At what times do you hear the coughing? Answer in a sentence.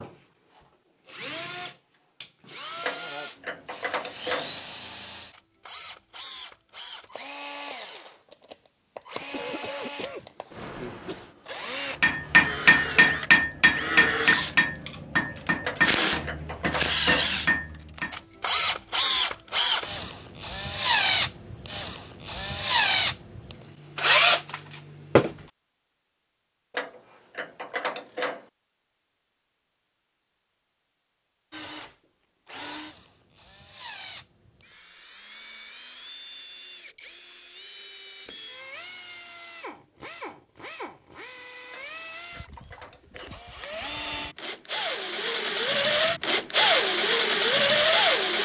The coughing can be heard from 9.2 to 11.2 s.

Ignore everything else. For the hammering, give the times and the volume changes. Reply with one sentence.
The hammering can be heard from 12.0 to 18.1 s, getting quieter.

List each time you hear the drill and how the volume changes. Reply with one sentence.
You can hear the drill from 0.0 to 25.4 s, getting louder; and from 31.5 to 48.4 s, getting louder.